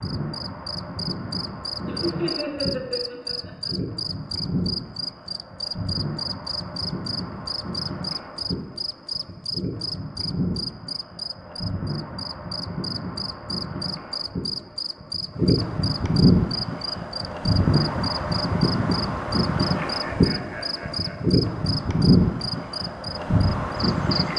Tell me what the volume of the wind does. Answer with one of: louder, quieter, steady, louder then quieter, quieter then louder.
louder.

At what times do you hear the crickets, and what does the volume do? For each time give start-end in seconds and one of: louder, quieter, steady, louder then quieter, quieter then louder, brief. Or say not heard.
0.0-24.3 steady.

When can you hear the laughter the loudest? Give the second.
2 s.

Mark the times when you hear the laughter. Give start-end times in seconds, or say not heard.
1.9-3.7, 19.8-21.4.